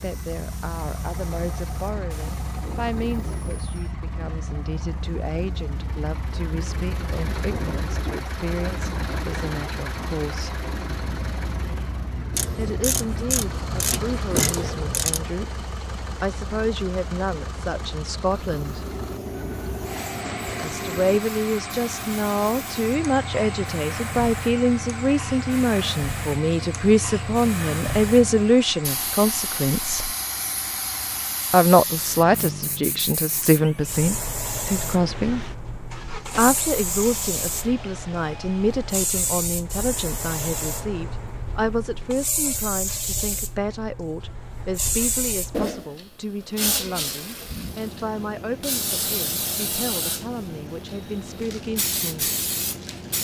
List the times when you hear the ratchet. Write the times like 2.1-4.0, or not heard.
12.3-15.2.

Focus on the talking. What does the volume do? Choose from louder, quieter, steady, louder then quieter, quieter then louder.
louder then quieter.